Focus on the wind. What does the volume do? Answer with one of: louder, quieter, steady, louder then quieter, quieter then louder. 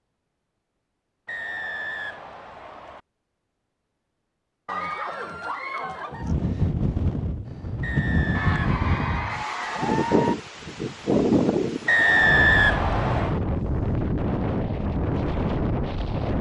steady.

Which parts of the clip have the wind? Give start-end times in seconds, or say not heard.
6.1-16.3.